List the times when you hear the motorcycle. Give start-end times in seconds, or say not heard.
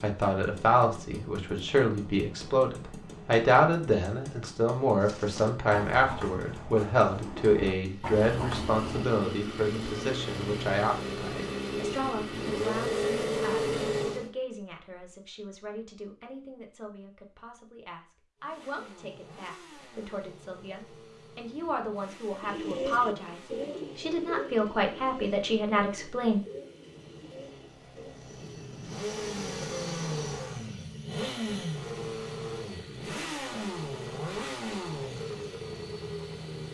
0.0-14.3, 18.4-36.6.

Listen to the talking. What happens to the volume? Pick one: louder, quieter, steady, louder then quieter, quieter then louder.
quieter then louder.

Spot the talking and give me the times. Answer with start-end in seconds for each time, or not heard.
0.0-26.4.